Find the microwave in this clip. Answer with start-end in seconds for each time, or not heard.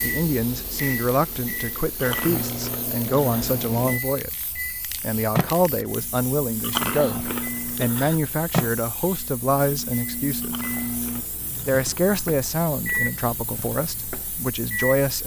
0.0-15.2.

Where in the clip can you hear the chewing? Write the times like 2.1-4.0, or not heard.
2.0-3.5, 6.6-8.2, 10.4-11.8.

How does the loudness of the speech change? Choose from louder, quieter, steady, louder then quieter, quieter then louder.
steady.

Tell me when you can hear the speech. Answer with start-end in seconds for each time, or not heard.
0.0-10.6, 11.7-15.2.